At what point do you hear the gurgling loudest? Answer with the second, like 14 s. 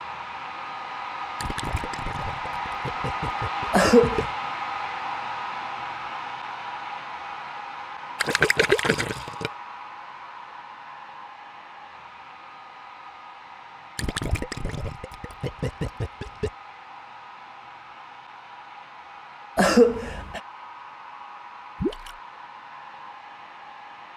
9 s.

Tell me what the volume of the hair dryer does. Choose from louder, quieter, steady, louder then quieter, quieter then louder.
quieter.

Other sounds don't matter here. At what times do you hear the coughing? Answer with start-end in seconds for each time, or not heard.
3.7-4.2, 19.6-20.4.